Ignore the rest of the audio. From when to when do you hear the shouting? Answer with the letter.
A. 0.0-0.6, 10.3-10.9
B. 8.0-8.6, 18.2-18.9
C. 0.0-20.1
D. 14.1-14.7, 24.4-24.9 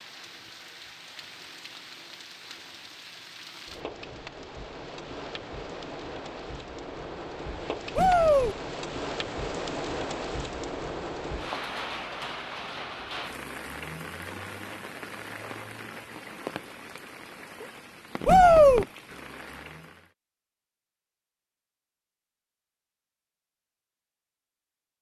B.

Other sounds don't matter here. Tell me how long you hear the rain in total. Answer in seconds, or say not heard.
20 s.